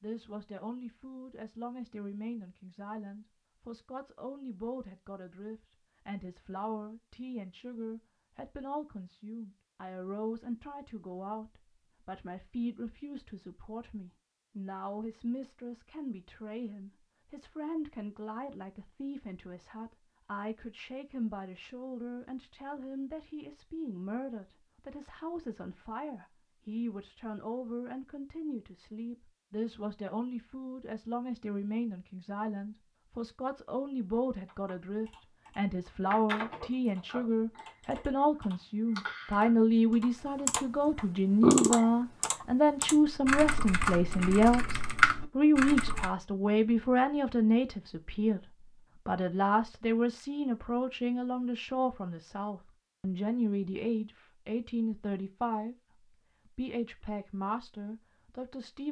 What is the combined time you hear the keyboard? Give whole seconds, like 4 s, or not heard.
12 s.